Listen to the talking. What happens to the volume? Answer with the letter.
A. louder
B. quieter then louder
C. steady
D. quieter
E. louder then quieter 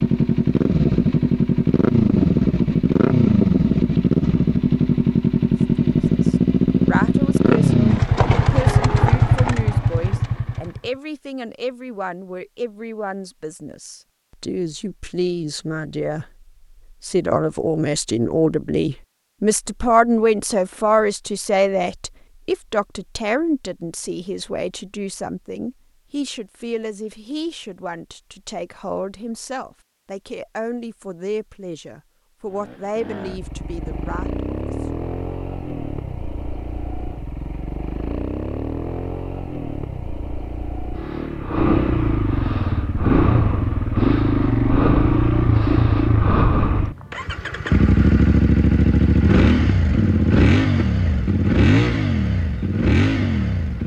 E.